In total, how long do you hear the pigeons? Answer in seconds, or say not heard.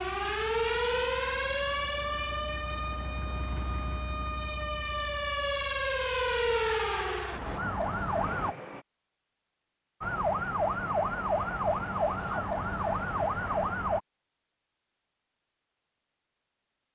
not heard.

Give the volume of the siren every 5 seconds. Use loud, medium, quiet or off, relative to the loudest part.
loud, loud, loud, off.